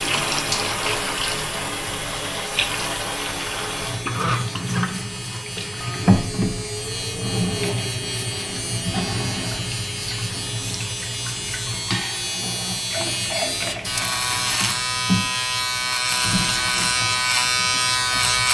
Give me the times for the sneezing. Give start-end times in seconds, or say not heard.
not heard.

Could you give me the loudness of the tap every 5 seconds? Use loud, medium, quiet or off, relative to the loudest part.
loud, loud, medium, medium.